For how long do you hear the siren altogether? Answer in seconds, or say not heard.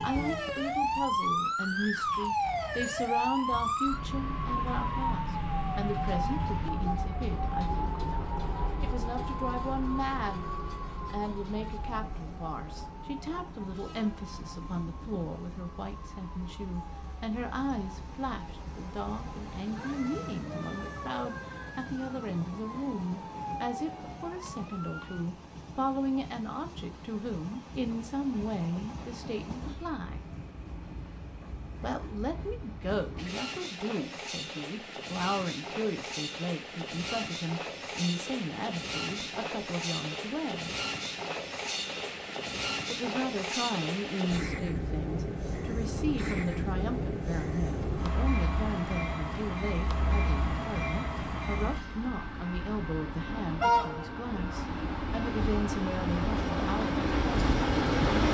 25 s.